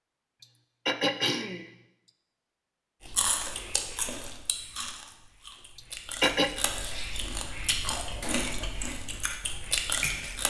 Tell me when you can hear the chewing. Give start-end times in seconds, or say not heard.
3.0-10.4.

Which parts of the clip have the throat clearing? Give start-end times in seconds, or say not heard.
0.4-2.1, 5.8-6.7.